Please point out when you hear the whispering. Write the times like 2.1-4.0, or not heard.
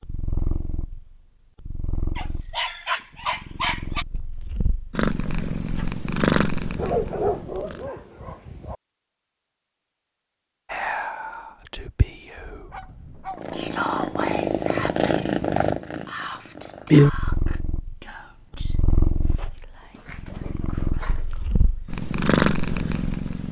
10.7-22.0.